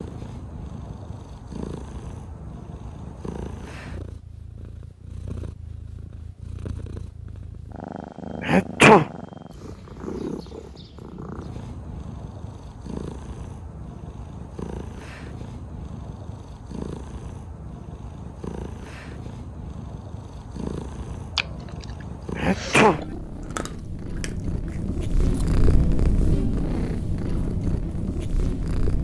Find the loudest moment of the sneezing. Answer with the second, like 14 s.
9 s.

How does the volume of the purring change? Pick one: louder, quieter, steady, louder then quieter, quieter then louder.
louder.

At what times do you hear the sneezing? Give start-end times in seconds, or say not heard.
8.4-9.1, 22.4-23.0.